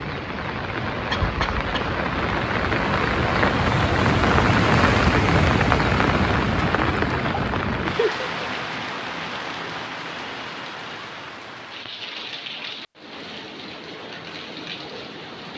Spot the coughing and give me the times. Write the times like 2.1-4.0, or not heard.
1.1-1.9.